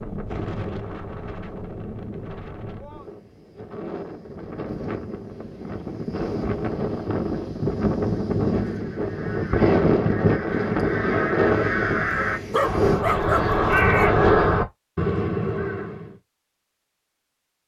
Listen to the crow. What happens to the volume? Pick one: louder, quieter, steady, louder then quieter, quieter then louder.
louder.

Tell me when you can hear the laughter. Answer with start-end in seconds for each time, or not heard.
not heard.